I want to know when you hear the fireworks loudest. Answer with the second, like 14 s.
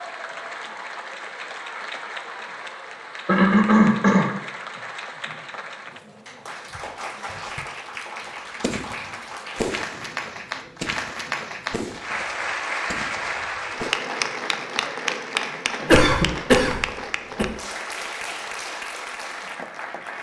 10 s.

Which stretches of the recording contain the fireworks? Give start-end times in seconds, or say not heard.
8.6-13.9.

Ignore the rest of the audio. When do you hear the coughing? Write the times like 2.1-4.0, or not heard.
3.2-4.3, 15.8-17.4.